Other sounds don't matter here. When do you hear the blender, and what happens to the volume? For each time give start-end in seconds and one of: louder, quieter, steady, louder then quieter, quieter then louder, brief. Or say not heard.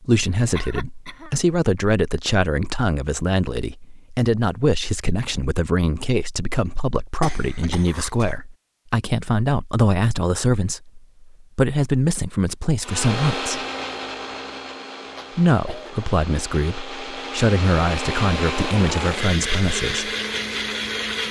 12.8-21.2 quieter then louder.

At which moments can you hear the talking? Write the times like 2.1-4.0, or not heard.
0.0-13.6, 15.3-20.1.